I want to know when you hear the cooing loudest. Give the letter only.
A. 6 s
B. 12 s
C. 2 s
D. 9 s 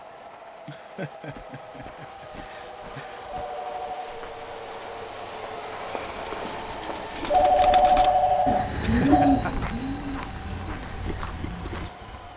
D.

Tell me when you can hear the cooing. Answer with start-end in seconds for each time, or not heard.
6.1-12.2.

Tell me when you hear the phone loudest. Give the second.
8 s.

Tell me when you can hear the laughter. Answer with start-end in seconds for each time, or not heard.
0.7-3.2, 8.8-9.7.